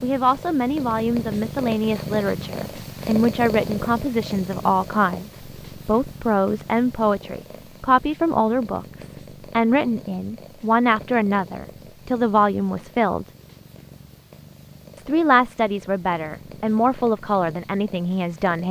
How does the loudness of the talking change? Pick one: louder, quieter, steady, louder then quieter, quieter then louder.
steady.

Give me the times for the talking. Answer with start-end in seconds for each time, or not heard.
0.0-13.2, 14.9-18.6.